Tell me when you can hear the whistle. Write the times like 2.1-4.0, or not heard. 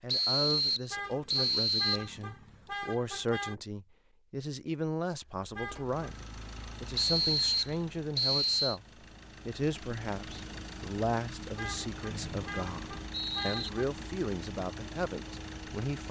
0.1-2.1, 7.0-8.8, 12.1-13.7.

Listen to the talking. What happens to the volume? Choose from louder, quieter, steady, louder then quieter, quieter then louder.
steady.